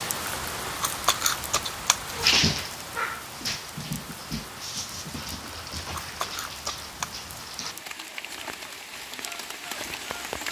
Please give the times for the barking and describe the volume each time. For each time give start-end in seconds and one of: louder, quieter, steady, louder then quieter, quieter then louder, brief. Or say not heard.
2.1-7.8 quieter.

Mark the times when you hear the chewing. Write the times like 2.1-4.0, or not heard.
0.5-2.2, 5.5-7.2.